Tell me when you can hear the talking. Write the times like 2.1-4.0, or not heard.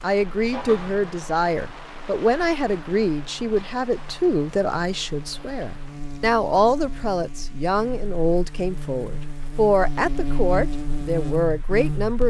0.0-12.2.